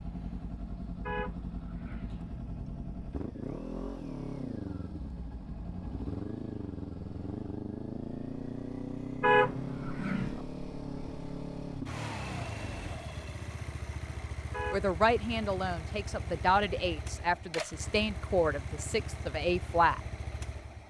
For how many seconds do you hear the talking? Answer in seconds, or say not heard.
5 s.